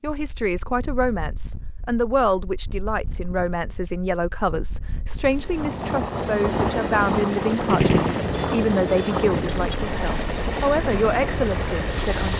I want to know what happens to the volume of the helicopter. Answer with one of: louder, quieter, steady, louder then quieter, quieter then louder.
steady.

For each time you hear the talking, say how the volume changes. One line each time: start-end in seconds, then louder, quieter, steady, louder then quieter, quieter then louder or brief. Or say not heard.
0.0-12.3 steady.